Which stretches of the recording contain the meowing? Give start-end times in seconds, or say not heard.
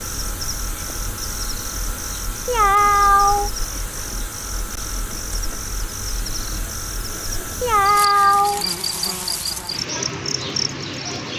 2.5-3.5, 7.6-8.7.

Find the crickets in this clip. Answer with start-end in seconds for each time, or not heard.
0.0-11.3.